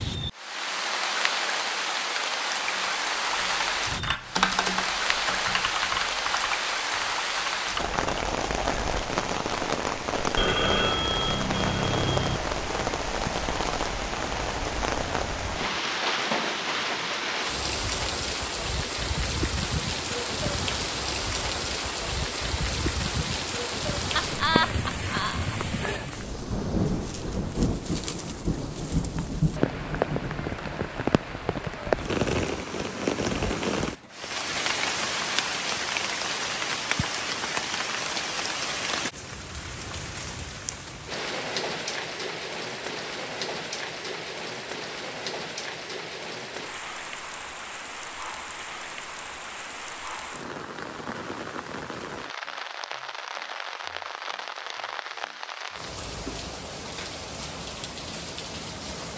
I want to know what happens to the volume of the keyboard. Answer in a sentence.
The volume of the keyboard goes up, then down.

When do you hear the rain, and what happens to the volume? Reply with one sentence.
The rain can be heard from 0.0 to 59.1 s, getting quieter.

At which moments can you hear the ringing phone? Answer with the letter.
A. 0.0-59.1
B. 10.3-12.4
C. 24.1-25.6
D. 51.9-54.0
B.